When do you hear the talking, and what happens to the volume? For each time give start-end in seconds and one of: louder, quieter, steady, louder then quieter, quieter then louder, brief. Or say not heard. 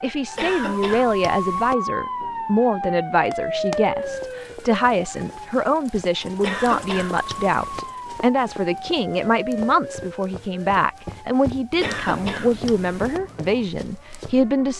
0.0-14.7 steady.